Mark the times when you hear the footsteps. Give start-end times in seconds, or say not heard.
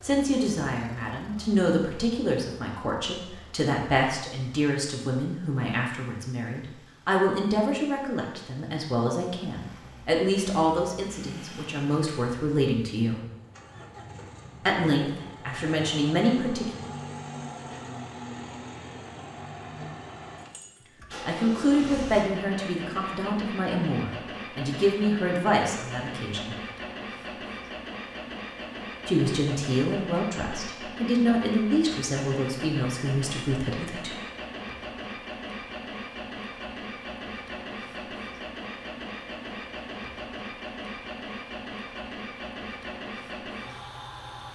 not heard.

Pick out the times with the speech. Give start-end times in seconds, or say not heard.
0.0-13.2, 14.7-16.6, 21.2-26.6, 29.1-34.1.